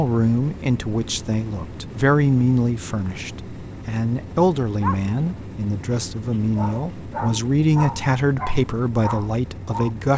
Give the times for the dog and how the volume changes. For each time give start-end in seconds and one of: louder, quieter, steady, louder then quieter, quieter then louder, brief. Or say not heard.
4.8-9.9 louder.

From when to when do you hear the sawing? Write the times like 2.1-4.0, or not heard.
not heard.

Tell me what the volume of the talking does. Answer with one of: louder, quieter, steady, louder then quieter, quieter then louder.
steady.